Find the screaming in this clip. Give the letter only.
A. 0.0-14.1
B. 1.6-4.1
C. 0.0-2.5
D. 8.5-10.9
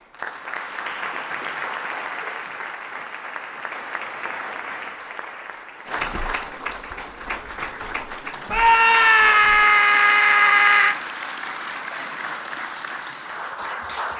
D.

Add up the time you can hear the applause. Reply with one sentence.
The applause can be heard for 14 seconds in total.